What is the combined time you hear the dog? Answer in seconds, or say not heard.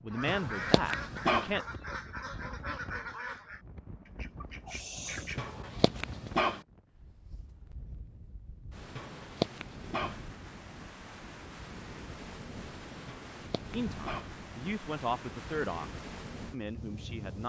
5 s.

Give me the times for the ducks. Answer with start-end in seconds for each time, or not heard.
0.1-5.5.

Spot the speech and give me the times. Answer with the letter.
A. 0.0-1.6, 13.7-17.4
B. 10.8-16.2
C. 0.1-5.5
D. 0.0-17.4
A.